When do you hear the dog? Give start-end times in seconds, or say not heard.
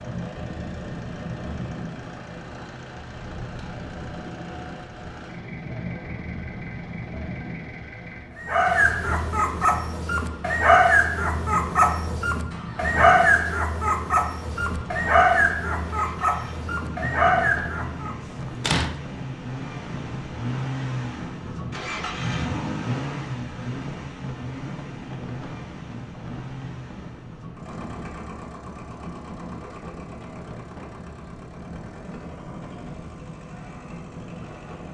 8.3-18.1.